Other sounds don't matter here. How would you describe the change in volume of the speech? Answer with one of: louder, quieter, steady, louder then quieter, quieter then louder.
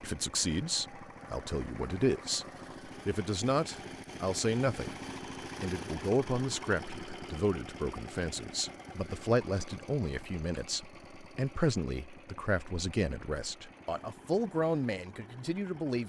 steady.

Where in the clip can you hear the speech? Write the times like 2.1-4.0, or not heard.
0.0-5.0, 5.6-16.0.